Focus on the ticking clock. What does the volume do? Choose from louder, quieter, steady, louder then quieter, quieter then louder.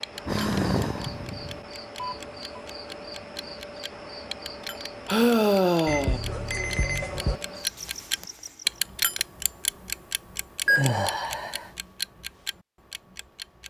louder then quieter.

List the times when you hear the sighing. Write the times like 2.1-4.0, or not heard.
0.2-1.6, 5.0-6.2, 10.7-11.7.